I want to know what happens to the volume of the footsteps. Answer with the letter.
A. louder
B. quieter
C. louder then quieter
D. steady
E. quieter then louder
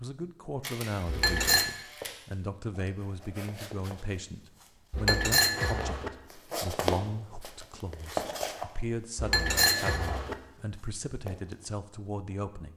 C.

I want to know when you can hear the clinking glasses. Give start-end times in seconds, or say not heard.
1.1-1.6, 4.9-6.1, 9.2-10.3.